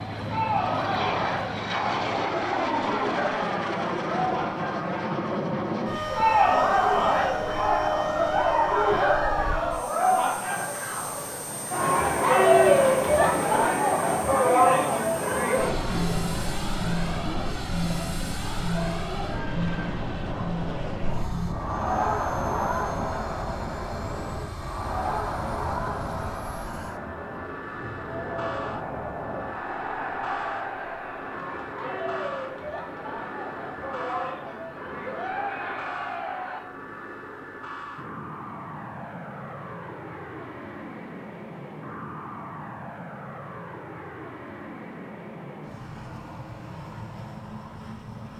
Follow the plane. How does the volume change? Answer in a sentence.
The loudness of the plane goes down.